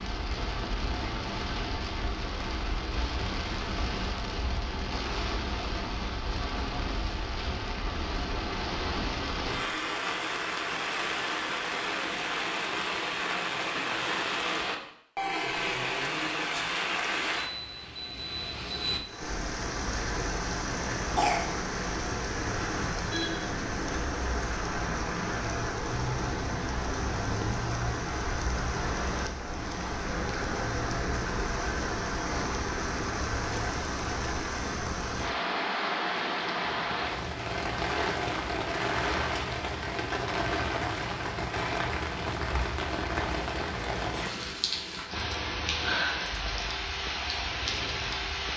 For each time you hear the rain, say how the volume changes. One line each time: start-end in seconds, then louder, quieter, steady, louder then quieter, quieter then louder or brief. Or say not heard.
0.0-48.5 steady.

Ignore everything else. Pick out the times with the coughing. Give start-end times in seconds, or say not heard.
21.1-21.6.